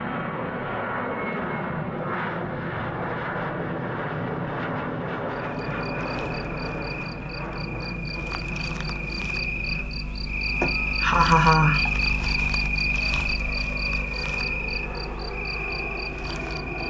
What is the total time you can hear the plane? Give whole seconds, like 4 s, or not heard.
17 s.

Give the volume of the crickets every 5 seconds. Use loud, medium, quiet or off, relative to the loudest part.
off, medium, loud, medium.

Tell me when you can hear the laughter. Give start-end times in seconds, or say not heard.
10.6-11.9.